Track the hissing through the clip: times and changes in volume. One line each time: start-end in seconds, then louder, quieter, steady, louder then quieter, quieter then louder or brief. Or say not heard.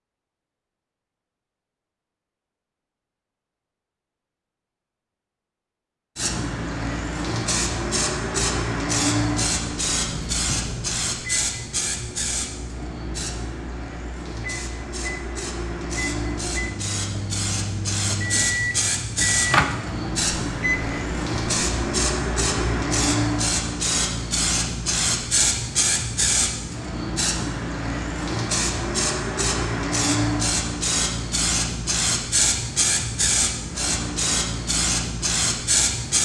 6.2-36.1 quieter then louder.